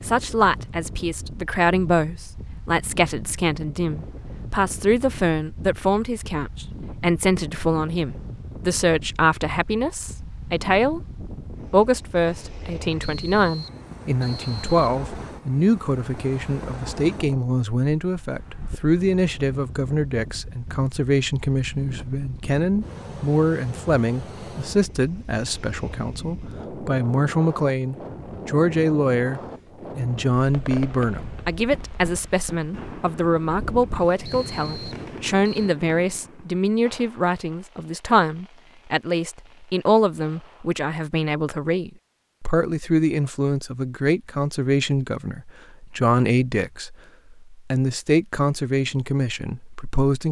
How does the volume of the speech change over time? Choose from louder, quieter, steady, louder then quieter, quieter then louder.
steady.